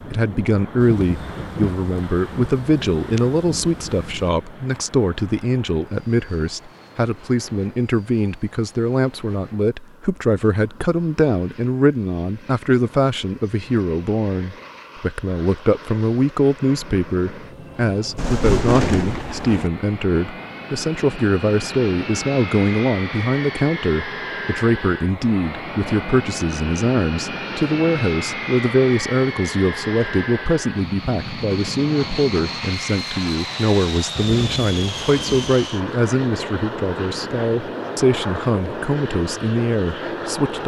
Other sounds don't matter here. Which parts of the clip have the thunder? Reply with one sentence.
You can hear the thunder from 0.8 to 4.3 s, from 18.1 to 19.7 s and from 34.1 to 35.5 s.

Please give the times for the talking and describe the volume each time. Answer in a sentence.
The talking can be heard from 0.1 to 40.6 s, at a steady volume.